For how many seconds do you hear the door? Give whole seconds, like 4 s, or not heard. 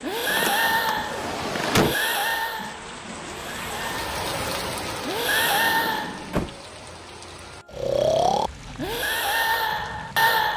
3 s.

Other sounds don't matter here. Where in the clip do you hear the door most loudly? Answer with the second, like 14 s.
2 s.